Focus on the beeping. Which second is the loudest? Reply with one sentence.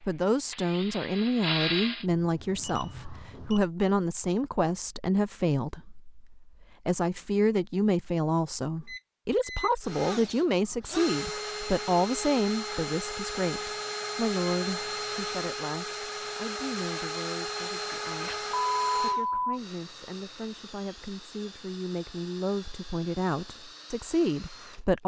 The loudest moment of the beeping is at 19 seconds.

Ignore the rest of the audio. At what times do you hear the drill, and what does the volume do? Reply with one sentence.
You can hear the drill briefly from 0.0 to 2.0 s; and from 9.8 to 25.0 s, getting quieter.